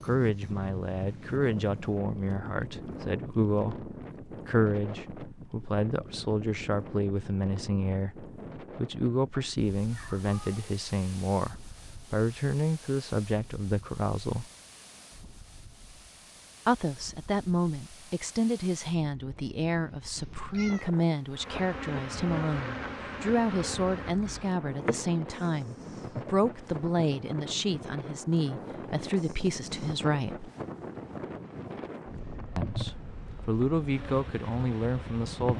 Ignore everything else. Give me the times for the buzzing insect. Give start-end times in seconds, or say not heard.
21.4-26.9, 32.5-35.5.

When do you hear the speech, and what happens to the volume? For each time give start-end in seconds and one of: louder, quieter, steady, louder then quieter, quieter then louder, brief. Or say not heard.
0.0-14.4 steady
16.6-30.5 steady
32.5-35.5 brief.